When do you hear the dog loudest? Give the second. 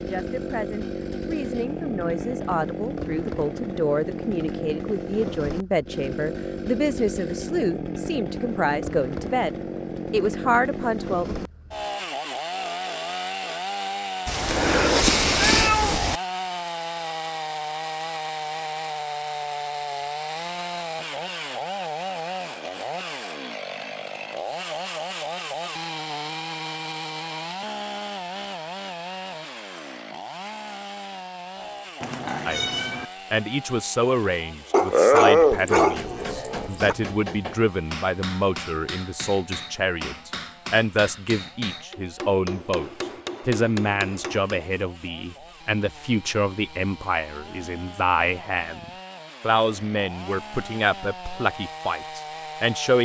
35 s.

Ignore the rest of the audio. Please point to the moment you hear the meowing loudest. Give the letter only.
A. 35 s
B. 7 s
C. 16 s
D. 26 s
C.